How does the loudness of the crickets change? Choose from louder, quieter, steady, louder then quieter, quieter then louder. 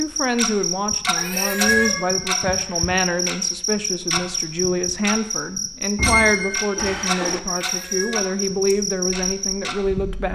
steady.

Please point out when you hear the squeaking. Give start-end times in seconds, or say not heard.
1.6-3.0, 6.0-7.4.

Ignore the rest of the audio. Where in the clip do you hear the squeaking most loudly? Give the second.
6 s.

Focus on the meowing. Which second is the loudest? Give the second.
2 s.